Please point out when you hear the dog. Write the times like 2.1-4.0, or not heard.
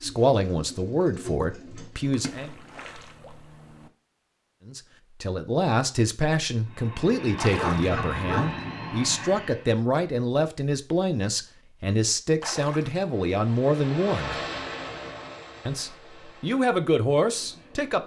7.5-8.6.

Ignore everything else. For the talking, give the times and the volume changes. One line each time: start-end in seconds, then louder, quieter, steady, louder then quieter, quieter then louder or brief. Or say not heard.
0.0-2.5 brief
4.7-14.4 steady
15.7-18.0 brief.